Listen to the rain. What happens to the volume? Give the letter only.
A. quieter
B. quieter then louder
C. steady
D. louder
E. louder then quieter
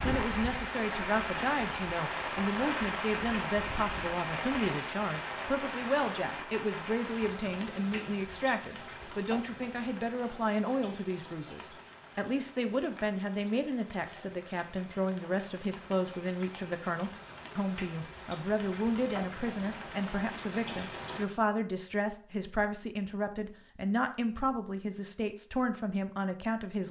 B.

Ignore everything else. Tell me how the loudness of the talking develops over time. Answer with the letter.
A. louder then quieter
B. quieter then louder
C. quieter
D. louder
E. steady
E.